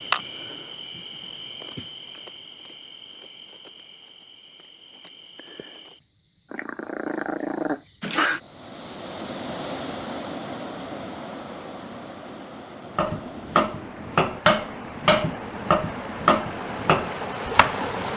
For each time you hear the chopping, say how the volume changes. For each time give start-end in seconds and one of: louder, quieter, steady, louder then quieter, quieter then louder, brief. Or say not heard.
12.9-17.9 steady.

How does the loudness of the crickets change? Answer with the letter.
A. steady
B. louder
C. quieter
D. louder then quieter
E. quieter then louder
E.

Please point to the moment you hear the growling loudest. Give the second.
8 s.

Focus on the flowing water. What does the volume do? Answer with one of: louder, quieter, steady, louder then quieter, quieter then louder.
quieter then louder.